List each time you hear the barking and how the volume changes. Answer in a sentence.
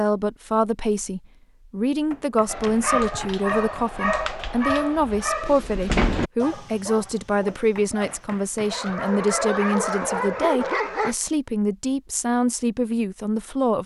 You can hear the barking from 2.5 to 11.2 s, getting quieter then louder.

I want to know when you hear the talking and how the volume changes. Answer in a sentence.
The talking can be heard from 0.0 to 13.8 s, at a steady volume.